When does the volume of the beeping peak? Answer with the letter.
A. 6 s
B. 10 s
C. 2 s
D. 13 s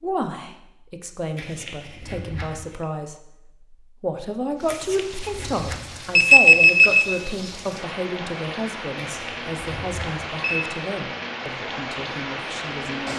A.